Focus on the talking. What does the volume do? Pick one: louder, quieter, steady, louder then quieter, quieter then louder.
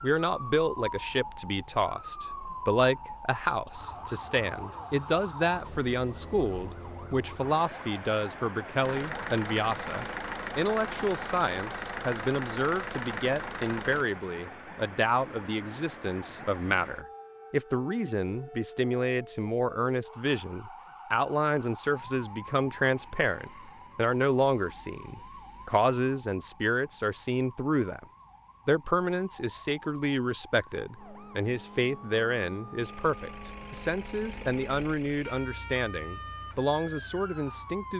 steady.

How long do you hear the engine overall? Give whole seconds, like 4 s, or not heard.
10 s.